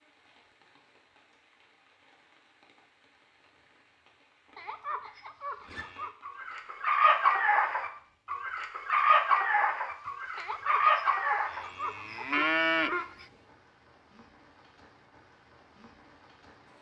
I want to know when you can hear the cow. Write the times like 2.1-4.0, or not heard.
4.5-6.2, 10.3-13.2.